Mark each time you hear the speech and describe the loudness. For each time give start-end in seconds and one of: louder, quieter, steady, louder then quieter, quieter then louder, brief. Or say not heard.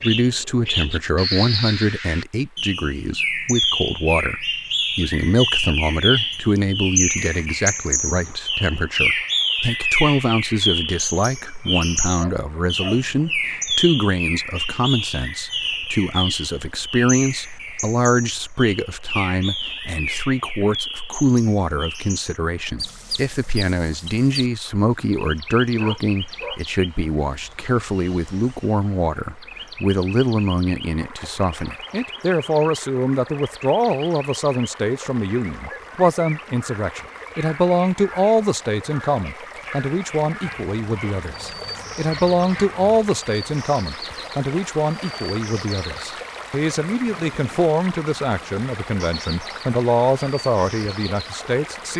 0.0-51.9 steady.